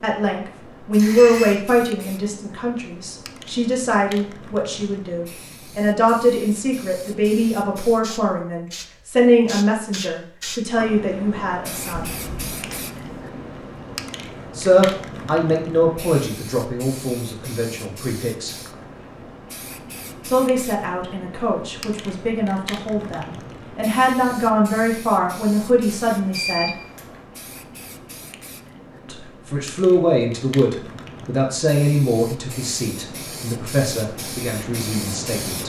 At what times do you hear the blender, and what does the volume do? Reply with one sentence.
The blender can't be heard in this clip.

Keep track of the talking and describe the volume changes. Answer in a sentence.
The loudness of the talking stays about the same.